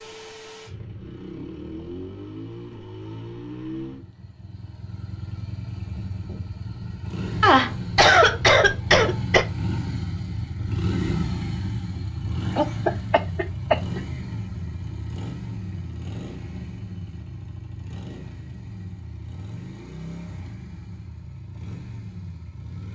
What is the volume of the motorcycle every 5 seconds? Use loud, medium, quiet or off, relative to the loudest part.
medium, loud, loud, medium, medium.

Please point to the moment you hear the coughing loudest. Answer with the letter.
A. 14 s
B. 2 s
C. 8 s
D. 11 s
C.